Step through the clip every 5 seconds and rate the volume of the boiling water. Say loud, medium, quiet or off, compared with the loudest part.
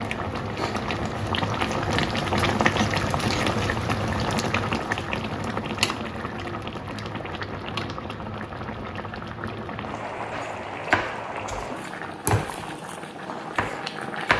loud, medium, medium.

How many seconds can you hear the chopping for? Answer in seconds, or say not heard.
4 s.